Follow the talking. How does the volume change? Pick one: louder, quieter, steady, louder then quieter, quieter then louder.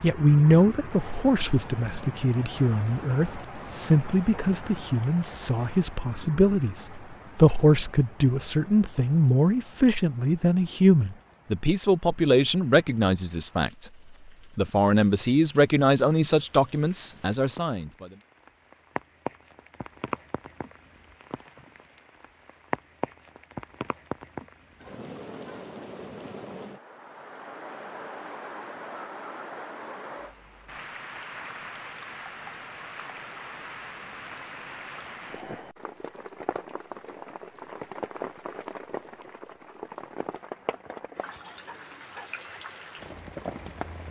steady.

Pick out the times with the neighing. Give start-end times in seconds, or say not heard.
not heard.